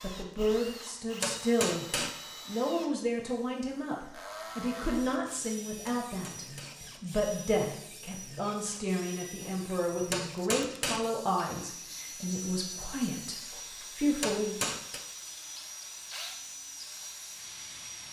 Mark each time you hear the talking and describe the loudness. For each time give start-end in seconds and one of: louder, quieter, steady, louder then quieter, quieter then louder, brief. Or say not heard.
0.0-1.9 brief
2.5-14.6 steady.